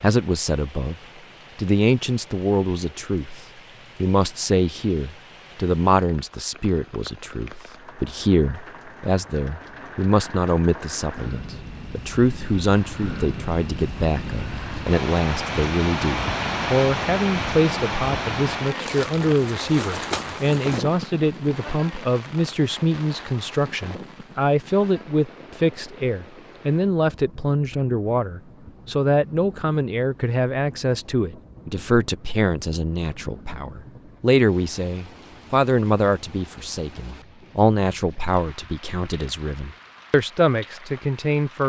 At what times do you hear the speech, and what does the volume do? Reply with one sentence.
The speech can be heard briefly from 0.0 to 0.9 s; and from 1.6 to 41.6 s, at a steady volume.